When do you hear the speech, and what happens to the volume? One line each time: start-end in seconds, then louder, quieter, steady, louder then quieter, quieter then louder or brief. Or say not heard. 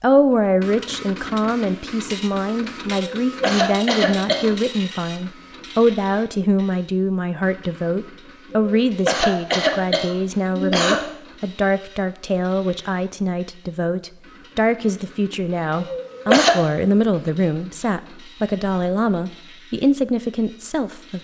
0.0-21.1 steady.